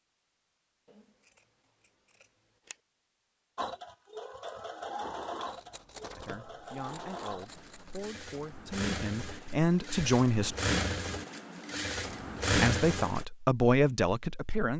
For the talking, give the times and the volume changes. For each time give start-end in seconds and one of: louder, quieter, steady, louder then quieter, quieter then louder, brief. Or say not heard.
6.2-10.6 louder
12.5-14.7 brief.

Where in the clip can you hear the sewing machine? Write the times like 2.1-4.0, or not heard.
3.5-13.2.